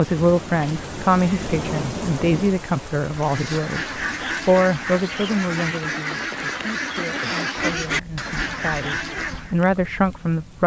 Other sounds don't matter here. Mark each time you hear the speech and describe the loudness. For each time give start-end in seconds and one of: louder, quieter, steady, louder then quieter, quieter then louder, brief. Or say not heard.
0.0-10.6 quieter then louder.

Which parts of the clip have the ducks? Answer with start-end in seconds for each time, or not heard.
3.1-9.6.